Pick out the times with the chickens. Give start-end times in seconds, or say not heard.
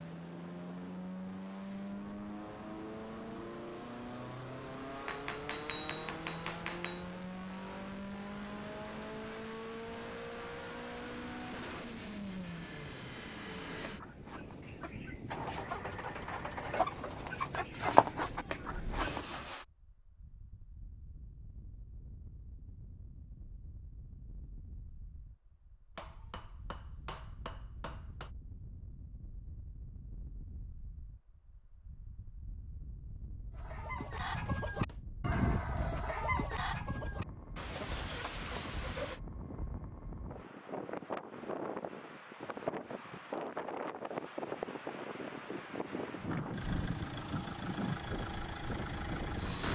13.8-19.2, 33.5-39.2.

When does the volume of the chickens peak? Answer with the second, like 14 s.
18 s.